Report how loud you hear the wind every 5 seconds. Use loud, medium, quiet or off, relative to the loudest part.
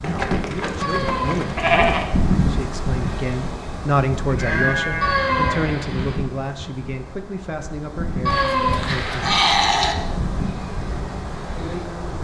loud, medium, loud.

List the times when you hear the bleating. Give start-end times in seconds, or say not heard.
0.0-2.0, 4.2-5.9, 8.2-9.9.